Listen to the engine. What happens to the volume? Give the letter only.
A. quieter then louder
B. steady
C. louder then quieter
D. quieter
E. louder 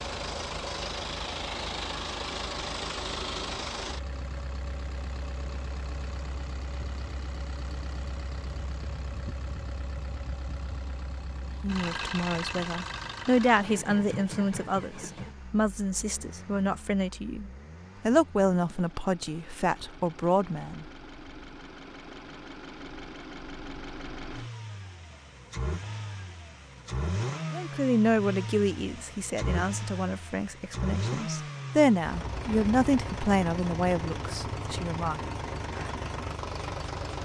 A.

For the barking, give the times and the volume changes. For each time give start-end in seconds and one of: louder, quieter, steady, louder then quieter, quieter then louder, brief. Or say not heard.
not heard.